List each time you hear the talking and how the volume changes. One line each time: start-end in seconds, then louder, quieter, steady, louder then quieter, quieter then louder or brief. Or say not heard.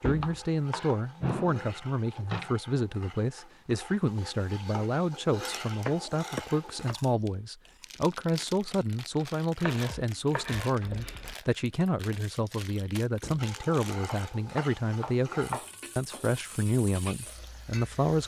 0.0-18.2 steady.